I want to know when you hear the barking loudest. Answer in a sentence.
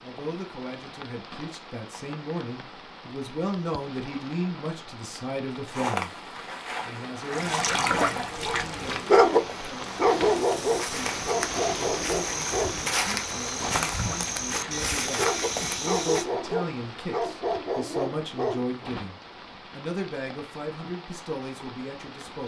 The volume of the barking peaks at 9 seconds.